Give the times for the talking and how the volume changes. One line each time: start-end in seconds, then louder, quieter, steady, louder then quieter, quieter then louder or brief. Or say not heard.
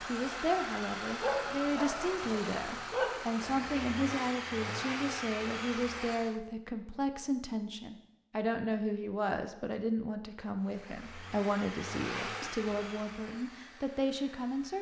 0.1-14.7 steady.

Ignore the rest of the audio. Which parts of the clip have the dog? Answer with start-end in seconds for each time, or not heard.
1.1-3.5.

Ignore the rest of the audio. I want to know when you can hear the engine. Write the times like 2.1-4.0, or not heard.
0.0-6.4, 10.6-14.7.